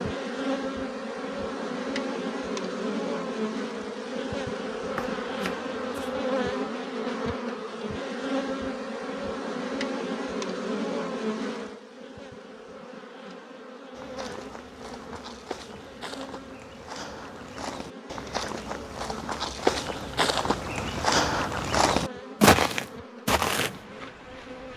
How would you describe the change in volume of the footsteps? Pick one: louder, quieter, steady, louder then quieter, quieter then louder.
louder.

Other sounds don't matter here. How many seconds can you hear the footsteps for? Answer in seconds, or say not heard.
10 s.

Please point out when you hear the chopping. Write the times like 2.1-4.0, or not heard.
5.0-6.2.